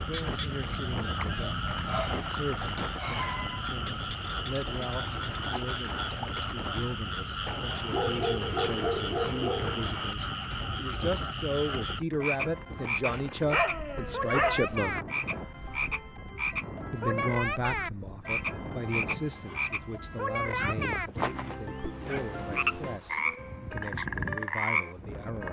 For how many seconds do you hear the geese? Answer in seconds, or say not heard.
4 s.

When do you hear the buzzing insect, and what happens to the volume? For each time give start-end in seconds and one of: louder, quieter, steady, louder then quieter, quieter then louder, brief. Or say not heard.
not heard.